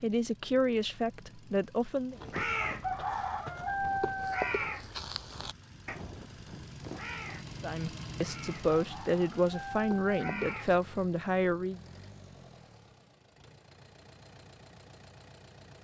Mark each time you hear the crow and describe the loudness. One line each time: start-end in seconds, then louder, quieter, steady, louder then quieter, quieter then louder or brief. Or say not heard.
2.1-10.8 quieter then louder.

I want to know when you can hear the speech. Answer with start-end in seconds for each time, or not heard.
0.0-2.1, 7.6-11.8.